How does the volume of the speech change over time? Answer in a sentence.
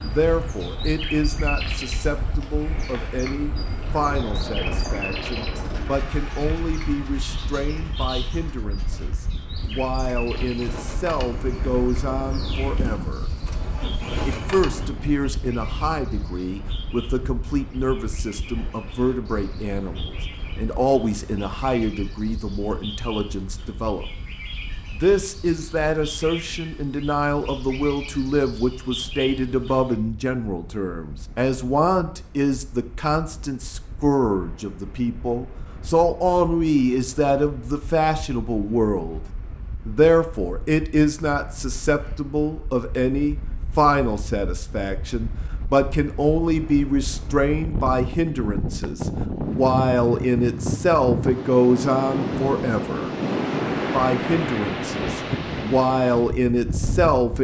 The loudness of the speech goes up.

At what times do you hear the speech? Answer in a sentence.
You can hear the speech from 0.0 to 13.3 s, from 14.2 to 24.1 s, from 24.9 to 39.2 s, from 39.9 to 53.1 s and from 53.9 to 57.3 s.